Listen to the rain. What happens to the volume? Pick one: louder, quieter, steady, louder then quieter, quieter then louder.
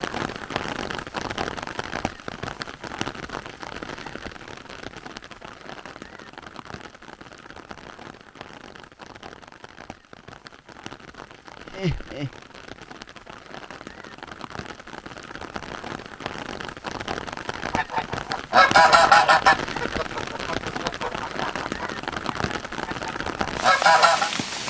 quieter then louder.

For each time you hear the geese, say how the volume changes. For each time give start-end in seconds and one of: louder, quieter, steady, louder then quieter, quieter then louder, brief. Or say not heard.
17.7-24.3 quieter then louder.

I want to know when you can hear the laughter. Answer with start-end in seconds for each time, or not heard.
11.7-12.3.